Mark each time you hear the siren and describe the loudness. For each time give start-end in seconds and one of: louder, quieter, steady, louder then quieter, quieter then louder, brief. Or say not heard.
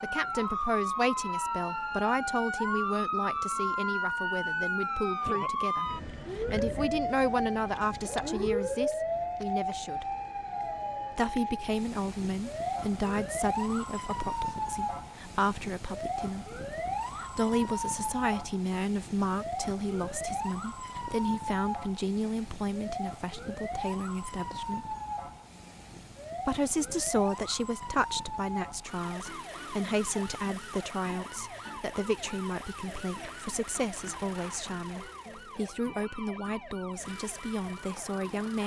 0.0-38.6 quieter.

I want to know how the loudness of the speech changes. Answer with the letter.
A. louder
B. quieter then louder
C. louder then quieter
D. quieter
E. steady
E.